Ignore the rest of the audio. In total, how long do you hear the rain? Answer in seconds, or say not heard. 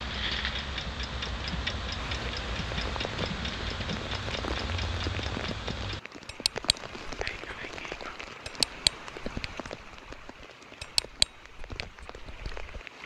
11 s.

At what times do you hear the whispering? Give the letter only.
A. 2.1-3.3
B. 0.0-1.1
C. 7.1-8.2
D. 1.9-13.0
C.